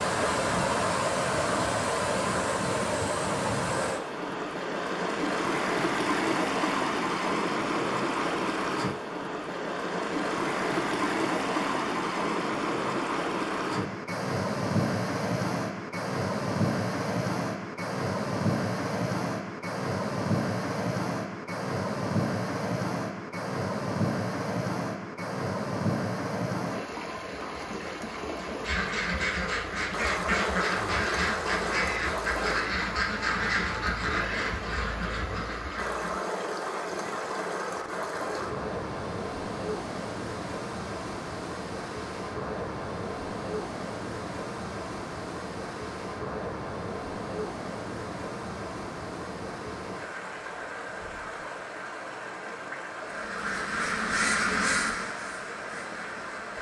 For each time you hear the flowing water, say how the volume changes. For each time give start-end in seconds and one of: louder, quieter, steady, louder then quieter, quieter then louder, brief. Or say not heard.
0.0-56.5 quieter.